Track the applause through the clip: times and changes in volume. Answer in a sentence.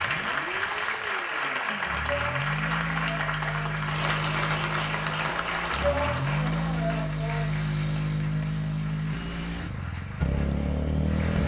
The applause can be heard from 0.0 to 11.4 s, getting quieter.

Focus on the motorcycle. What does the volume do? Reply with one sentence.
The loudness of the motorcycle goes up.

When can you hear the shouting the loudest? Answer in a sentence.
The loudest moment of the shouting is at 6 seconds.